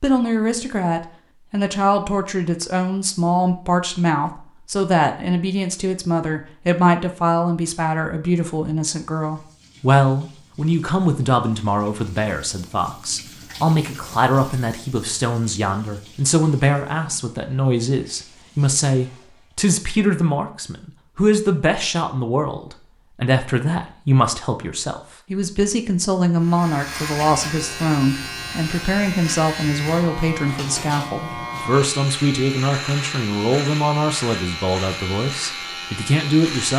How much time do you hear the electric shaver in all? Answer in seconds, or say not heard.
10 s.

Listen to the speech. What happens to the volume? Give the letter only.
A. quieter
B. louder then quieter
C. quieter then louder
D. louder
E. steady
E.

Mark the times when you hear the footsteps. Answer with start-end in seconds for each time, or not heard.
not heard.